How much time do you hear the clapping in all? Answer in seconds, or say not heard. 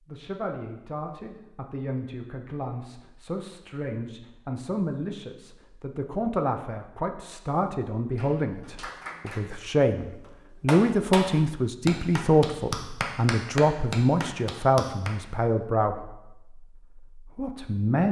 7 s.